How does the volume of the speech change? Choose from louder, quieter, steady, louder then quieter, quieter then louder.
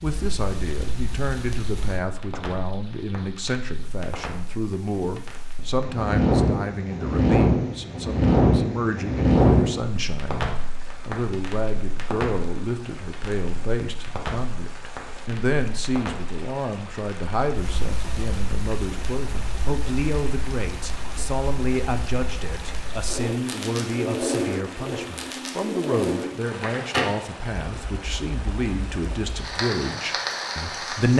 steady.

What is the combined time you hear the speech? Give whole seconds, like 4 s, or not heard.
31 s.